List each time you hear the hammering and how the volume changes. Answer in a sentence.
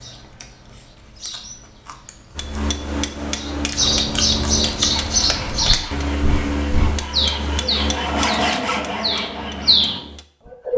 The hammering can be heard from 2.4 to 10.2 s, getting quieter.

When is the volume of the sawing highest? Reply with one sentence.
The volume of the sawing peaks at 8 seconds.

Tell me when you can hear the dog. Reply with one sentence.
The dog can't be heard in this clip.